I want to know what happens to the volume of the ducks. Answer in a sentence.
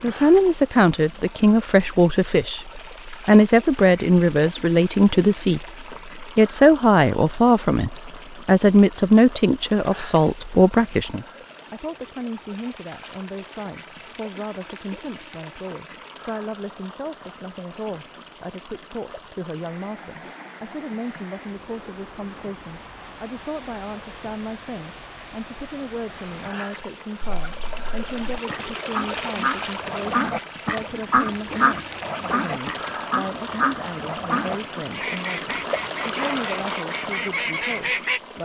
The volume of the ducks goes up, then down.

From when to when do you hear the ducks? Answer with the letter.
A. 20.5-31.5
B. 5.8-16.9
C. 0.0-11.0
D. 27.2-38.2
D.